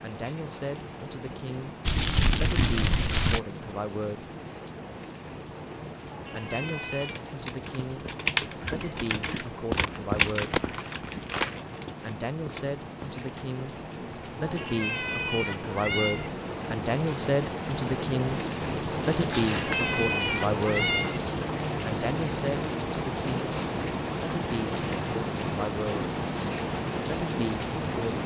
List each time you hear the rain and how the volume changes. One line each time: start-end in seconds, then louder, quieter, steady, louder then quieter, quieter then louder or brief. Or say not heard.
0.0-28.2 louder.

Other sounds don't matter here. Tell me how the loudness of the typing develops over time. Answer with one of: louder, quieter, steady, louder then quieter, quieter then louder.
louder then quieter.